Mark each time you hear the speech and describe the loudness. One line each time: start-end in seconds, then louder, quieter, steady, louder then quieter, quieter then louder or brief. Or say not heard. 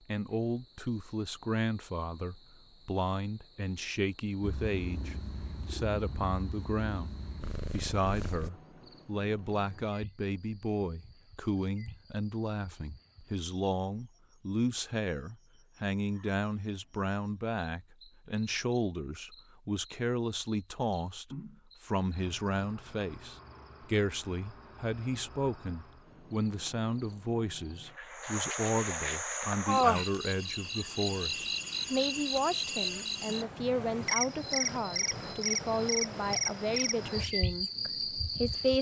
0.1-38.7 steady.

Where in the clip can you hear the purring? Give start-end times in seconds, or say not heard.
4.4-8.5.